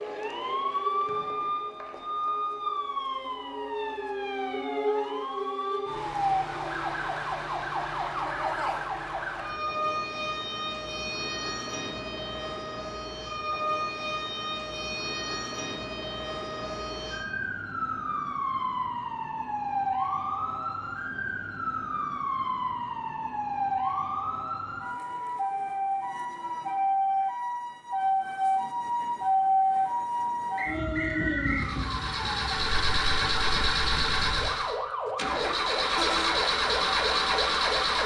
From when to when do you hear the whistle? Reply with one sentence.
The whistle can be heard from 1.1 to 2.4 s and from 30.6 to 31.7 s.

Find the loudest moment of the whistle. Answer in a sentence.
The volume of the whistle peaks at 31 seconds.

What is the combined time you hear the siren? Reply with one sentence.
The siren can be heard for 38 seconds in total.